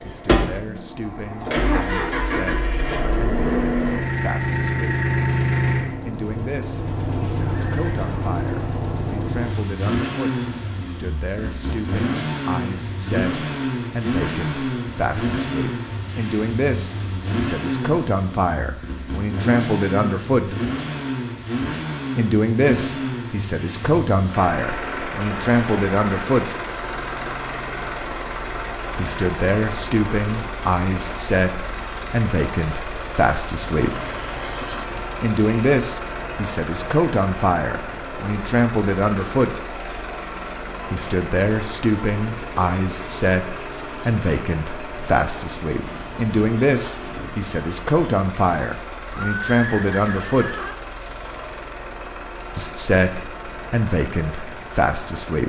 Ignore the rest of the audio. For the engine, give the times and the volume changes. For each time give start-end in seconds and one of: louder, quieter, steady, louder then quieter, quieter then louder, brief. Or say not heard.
0.0-55.4 quieter.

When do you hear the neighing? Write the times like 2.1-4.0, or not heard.
7.6-8.1, 33.6-35.0, 49.1-50.8.